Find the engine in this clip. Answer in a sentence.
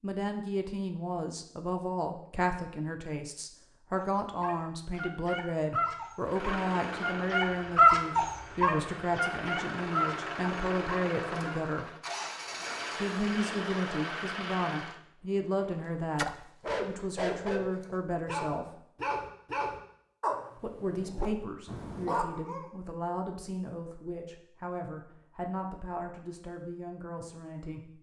You can hear the engine from 6.2 to 15.0 s.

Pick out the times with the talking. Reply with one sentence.
The talking can be heard from 0.0 to 11.9 s, from 12.9 to 18.8 s and from 20.6 to 27.9 s.